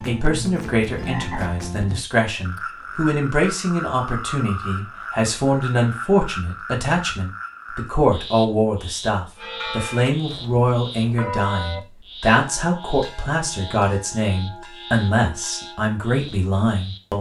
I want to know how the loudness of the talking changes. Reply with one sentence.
The volume of the talking stays about the same.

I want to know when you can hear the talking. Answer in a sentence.
The talking can be heard from 0.1 to 17.1 s.